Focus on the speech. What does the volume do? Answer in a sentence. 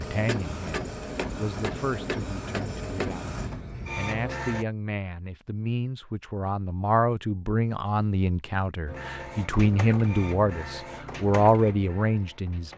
The volume of the speech goes up.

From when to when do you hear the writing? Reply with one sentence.
You can't hear the writing here.